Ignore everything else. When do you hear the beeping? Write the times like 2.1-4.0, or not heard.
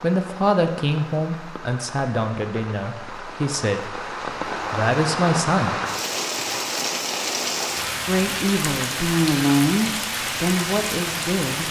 not heard.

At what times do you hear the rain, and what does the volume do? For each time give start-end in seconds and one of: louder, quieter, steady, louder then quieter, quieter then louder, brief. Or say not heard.
0.0-11.6 louder.